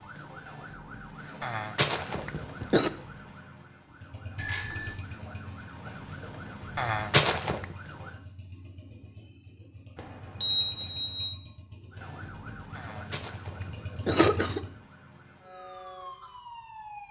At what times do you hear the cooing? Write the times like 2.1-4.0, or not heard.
not heard.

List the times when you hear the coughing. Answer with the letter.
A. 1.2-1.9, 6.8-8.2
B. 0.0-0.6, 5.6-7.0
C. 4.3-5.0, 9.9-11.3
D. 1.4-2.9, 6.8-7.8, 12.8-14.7
D.